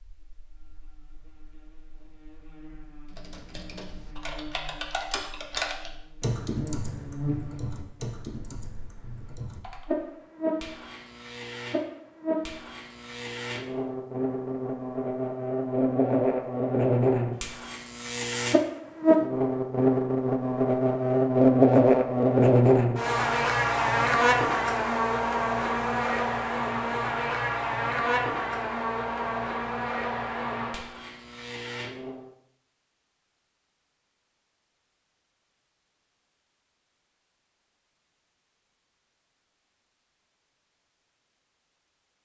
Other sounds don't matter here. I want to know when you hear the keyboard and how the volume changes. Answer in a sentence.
The keyboard can be heard from 3.0 to 9.8 s, getting louder then quieter.